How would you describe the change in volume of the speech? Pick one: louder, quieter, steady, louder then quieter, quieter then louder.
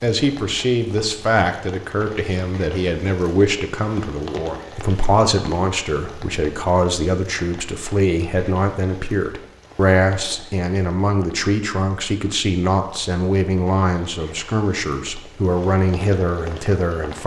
steady.